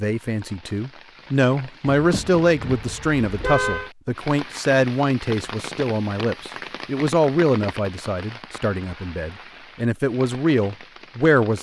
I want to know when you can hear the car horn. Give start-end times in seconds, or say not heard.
1.9-3.9.